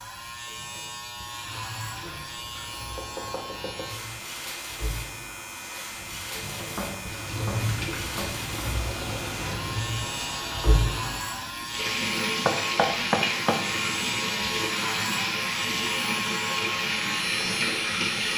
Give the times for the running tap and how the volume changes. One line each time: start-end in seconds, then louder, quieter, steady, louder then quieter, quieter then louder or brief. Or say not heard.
0.0-18.3 louder.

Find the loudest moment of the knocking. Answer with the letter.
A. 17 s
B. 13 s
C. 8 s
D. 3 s
B.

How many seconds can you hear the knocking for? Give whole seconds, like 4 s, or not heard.
5 s.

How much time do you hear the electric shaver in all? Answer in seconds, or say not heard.
18 s.